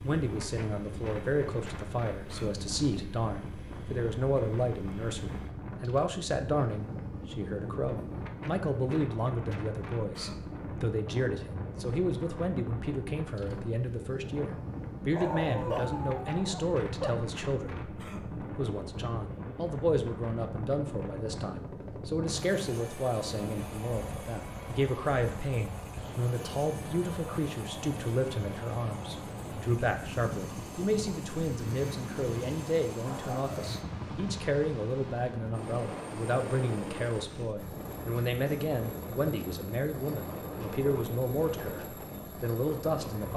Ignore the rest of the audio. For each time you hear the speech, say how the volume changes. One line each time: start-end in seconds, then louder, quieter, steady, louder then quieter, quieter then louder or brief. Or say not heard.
0.0-43.3 steady.